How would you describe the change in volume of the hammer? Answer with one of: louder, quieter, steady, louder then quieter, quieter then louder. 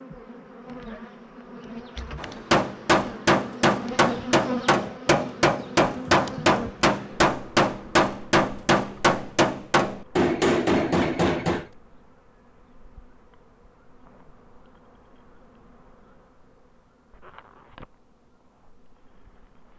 steady.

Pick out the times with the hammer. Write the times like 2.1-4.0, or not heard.
2.1-11.7.